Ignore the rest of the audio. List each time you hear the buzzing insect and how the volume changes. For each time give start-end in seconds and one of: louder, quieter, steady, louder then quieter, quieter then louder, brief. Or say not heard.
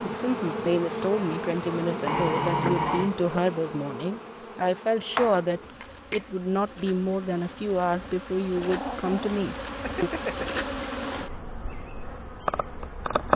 0.0-13.3 quieter then louder.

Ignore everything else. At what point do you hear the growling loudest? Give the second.
3 s.